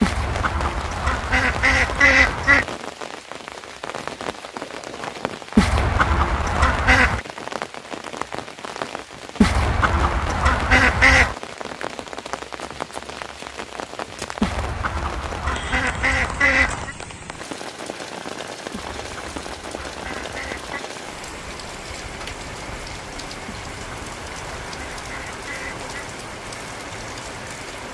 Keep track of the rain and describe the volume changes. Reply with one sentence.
The loudness of the rain stays about the same.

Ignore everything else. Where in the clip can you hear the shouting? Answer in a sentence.
The shouting can't be heard in this clip.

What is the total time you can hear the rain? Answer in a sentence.
The rain can be heard for 28 seconds in total.